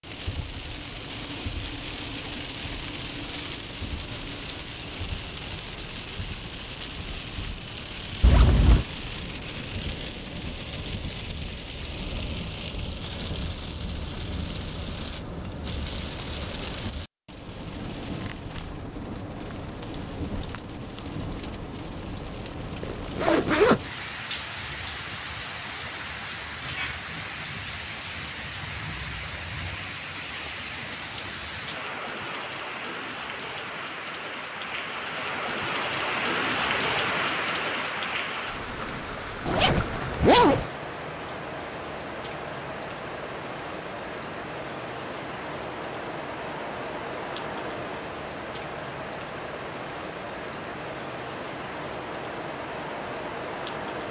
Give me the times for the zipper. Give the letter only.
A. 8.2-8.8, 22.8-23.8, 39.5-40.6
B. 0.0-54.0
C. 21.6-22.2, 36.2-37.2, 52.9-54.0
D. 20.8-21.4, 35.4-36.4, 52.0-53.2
A.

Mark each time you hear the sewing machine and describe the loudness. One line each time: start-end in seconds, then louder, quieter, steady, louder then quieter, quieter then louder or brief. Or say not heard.
not heard.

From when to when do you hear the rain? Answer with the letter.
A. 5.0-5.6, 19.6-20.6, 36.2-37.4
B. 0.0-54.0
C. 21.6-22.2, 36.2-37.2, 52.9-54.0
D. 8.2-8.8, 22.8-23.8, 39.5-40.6
B.